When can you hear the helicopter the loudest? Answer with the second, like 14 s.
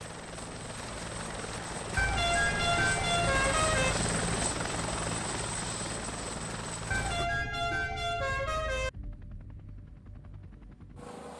4 s.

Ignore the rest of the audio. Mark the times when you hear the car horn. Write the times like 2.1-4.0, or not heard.
1.9-4.0, 6.9-8.9.